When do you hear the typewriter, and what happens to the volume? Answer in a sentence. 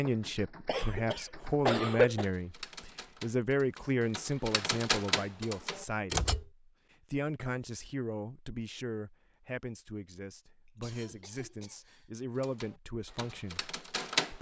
You can hear the typewriter from 0.0 to 6.5 s, getting louder; and briefly from 12.4 to 14.3 s.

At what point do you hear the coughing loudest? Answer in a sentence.
The volume of the coughing peaks at 2 seconds.